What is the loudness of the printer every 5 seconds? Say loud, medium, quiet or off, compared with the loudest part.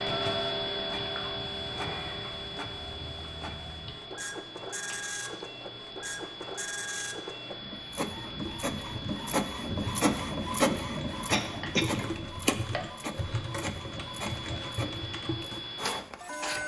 medium, loud, loud, medium.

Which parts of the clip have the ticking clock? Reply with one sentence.
You can hear the ticking clock from 0.0 to 16.6 s.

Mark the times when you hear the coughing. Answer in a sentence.
You can hear the coughing from 11.3 to 12.1 s.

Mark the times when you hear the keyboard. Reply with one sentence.
The keyboard can be heard from 8.1 to 15.7 s.